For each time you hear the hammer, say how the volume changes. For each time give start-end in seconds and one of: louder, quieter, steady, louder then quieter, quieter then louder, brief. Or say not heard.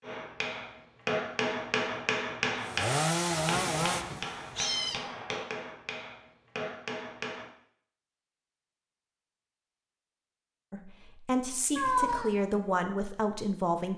0.0-7.5 quieter.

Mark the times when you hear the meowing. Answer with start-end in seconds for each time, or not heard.
3.5-5.0, 11.8-12.3.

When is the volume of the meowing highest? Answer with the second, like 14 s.
12 s.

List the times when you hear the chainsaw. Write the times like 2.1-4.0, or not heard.
2.6-4.7.